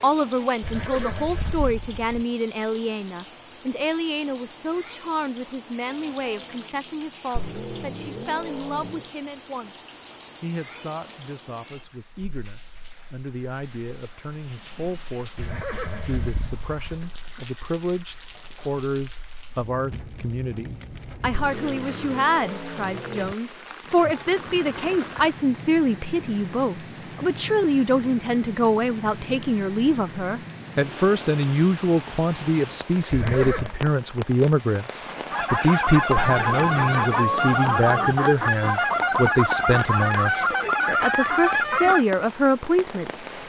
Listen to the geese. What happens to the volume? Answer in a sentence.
The loudness of the geese stays about the same.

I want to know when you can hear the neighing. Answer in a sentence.
You can hear the neighing from 0.6 to 2.2 s, from 15.3 to 17.0 s and from 33.1 to 33.8 s.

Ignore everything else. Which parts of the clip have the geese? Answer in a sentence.
The geese can be heard from 35.3 to 42.0 s.